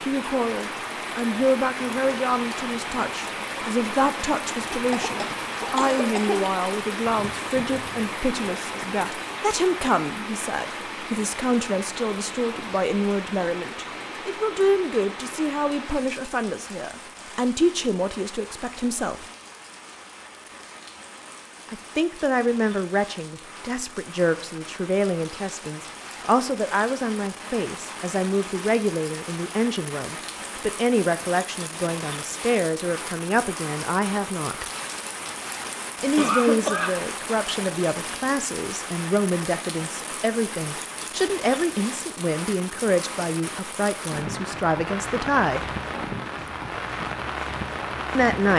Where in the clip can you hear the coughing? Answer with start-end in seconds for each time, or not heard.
4.7-6.5, 36.1-37.0.